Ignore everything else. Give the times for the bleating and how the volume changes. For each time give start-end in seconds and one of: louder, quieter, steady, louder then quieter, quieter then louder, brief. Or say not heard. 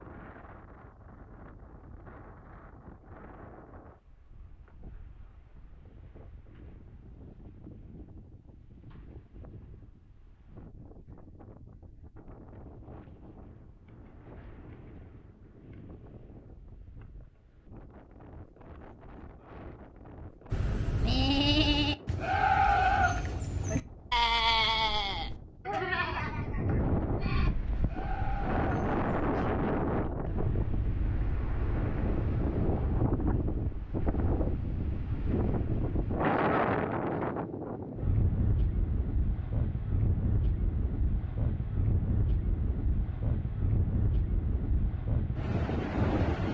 20.5-29.3 quieter.